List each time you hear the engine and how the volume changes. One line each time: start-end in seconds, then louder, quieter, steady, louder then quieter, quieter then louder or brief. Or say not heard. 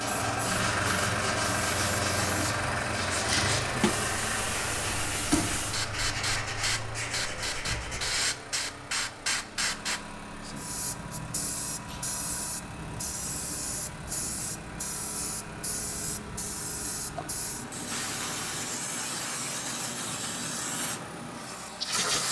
0.0-22.2 quieter.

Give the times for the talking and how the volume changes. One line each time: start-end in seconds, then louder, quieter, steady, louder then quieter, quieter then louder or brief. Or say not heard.
not heard.